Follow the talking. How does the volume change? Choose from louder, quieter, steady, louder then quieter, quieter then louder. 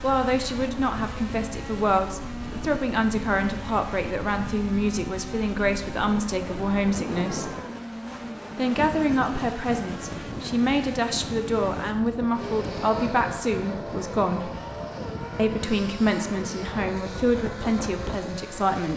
steady.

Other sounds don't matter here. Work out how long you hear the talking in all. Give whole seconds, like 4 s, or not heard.
17 s.